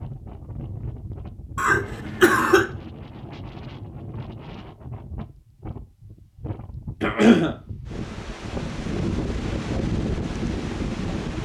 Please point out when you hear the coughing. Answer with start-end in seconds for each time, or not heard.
1.6-2.6, 7.0-7.5.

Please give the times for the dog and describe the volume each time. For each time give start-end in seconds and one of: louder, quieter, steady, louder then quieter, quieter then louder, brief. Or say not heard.
not heard.